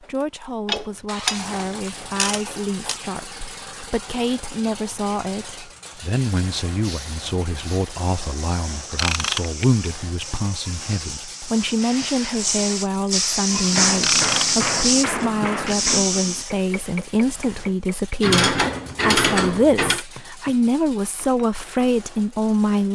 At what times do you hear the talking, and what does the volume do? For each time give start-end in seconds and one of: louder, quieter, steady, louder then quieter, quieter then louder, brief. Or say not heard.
0.0-22.9 louder.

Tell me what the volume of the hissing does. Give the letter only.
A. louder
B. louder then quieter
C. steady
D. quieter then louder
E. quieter
A.